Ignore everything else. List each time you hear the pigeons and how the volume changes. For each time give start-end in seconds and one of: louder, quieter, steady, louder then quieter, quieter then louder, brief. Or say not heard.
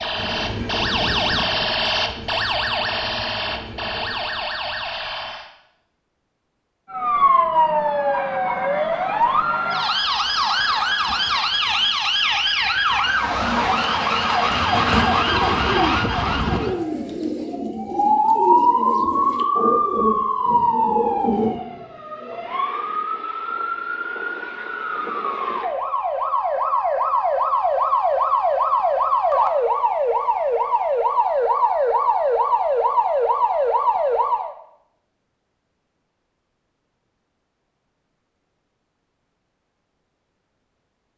14.5-21.6 steady.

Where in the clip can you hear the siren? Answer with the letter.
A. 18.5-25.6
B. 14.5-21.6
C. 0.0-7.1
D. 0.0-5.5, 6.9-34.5
D.